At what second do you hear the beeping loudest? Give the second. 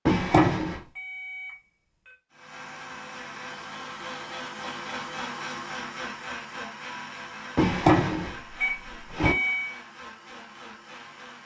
9 s.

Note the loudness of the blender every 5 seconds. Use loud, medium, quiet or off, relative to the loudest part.
loud, loud, medium.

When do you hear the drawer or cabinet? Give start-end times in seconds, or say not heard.
0.1-0.8, 7.5-9.3.